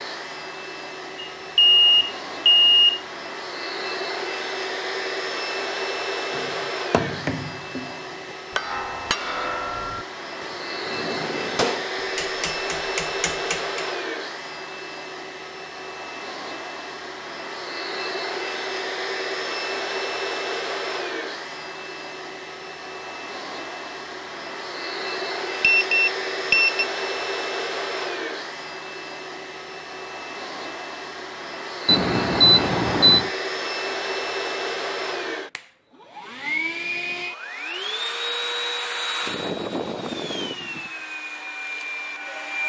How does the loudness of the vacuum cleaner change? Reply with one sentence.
The volume of the vacuum cleaner stays about the same.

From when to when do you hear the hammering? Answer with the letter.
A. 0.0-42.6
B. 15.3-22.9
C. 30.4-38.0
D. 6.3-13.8
D.